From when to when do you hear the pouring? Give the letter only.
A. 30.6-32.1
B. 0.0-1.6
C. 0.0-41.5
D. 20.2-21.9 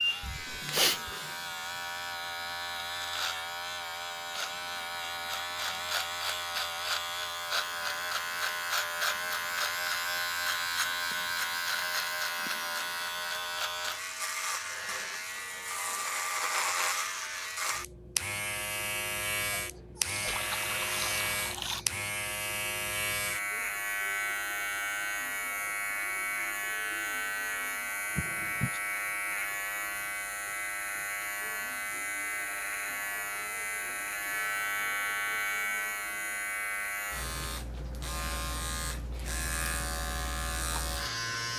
D.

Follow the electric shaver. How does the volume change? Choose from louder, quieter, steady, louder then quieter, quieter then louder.
steady.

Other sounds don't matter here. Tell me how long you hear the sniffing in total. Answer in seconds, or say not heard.
4 s.